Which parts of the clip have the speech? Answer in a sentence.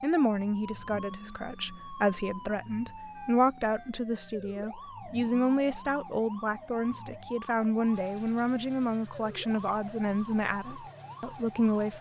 The speech can be heard from 0.0 to 11.9 s.